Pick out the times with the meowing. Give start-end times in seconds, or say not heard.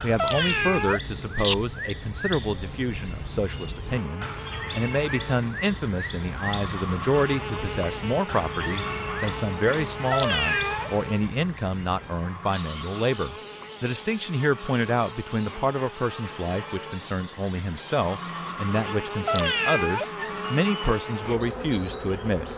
0.1-1.6, 10.1-10.9, 19.2-20.5.